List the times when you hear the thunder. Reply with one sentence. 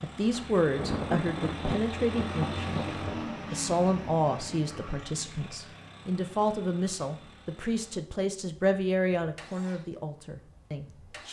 You can hear the thunder from 0.3 to 3.3 s.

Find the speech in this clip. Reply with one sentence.
You can hear the speech from 0.0 to 2.8 s and from 3.5 to 11.2 s.